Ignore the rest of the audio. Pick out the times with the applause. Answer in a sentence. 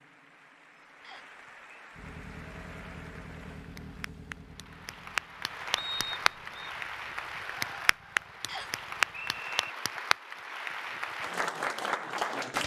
The applause can be heard from 0.0 to 12.6 s.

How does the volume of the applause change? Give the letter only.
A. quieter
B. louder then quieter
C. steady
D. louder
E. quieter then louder
D.